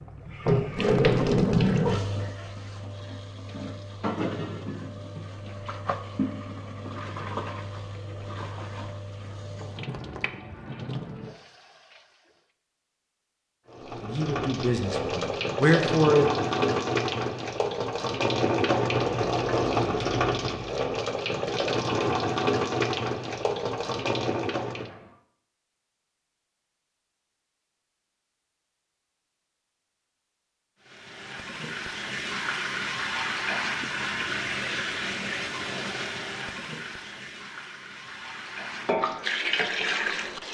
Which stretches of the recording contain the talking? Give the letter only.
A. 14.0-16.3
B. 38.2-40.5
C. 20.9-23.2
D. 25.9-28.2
A.